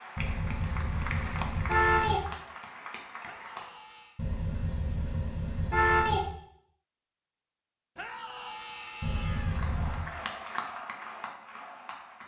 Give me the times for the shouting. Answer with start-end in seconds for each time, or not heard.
3.2-4.2, 8.0-9.6.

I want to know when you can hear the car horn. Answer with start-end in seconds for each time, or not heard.
0.1-2.2, 4.2-6.2, 9.0-10.1.